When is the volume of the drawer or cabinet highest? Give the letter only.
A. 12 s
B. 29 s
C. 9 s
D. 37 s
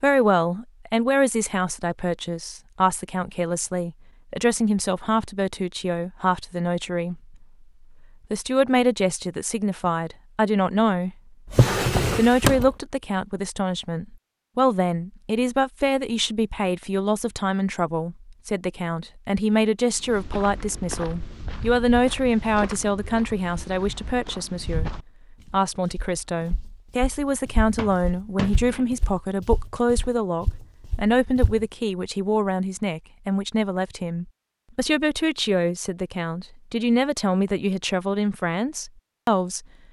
A.